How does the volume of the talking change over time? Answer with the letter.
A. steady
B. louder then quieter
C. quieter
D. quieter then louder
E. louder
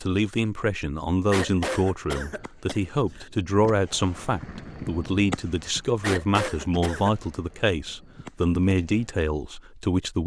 A.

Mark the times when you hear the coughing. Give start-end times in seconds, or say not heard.
1.3-3.3, 6.0-7.2.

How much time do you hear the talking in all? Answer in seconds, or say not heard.
10 s.